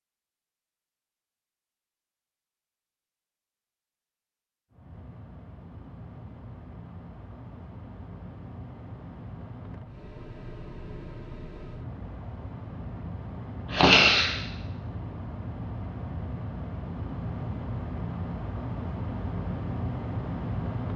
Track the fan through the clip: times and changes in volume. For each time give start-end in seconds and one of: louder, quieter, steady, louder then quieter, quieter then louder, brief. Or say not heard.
4.7-20.9 louder.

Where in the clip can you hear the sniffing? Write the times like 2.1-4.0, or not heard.
13.7-14.3.